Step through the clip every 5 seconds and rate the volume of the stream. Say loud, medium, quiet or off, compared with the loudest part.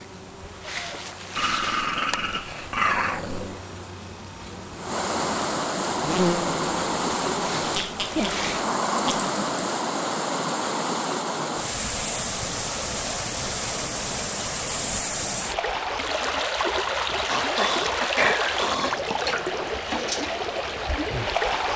quiet, loud, loud, loud, loud.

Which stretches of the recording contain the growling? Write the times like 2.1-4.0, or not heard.
1.4-3.6, 7.6-9.6, 17.3-19.0.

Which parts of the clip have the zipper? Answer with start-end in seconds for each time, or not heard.
not heard.